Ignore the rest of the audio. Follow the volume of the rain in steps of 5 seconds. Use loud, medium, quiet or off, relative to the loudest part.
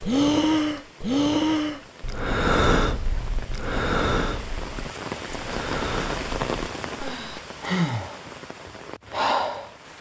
medium, loud.